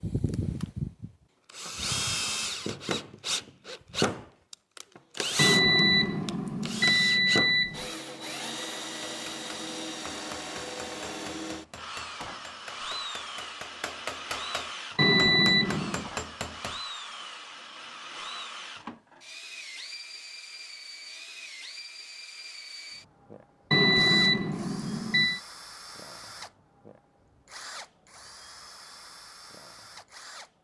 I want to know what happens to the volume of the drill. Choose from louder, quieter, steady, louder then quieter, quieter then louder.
quieter.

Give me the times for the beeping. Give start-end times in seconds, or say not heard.
5.3-7.8, 14.9-16.1, 23.7-25.4.